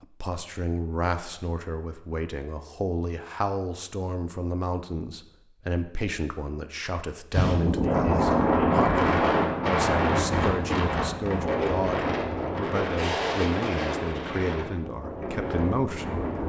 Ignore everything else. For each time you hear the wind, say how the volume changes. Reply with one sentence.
The wind can be heard from 7.3 to 16.4 s, getting quieter.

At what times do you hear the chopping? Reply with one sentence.
You can't hear the chopping here.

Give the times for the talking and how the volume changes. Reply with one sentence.
The talking can be heard from 0.0 to 16.2 s, at a steady volume.